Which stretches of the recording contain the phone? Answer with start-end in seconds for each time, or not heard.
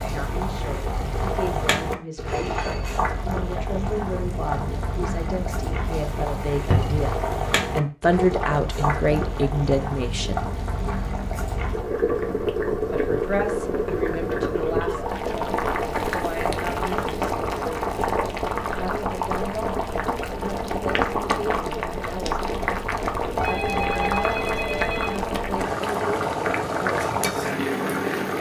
2.2-3.0, 14.4-14.8, 23.4-25.2.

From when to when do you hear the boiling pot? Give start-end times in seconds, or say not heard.
0.0-28.3.